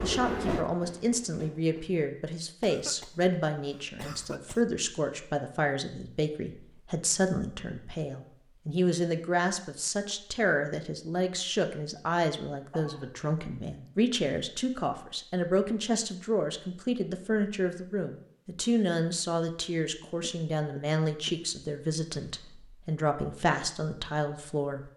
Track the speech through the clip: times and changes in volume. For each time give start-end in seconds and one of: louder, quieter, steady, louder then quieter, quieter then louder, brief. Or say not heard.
0.0-24.9 steady.